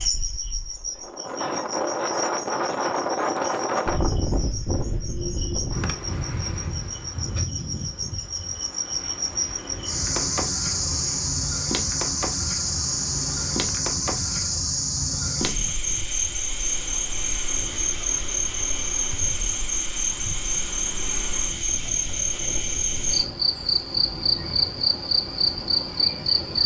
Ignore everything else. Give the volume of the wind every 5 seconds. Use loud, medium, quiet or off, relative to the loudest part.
loud, medium, quiet, quiet, quiet, quiet.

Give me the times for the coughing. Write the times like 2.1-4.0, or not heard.
not heard.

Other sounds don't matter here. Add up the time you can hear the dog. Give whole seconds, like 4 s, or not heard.
not heard.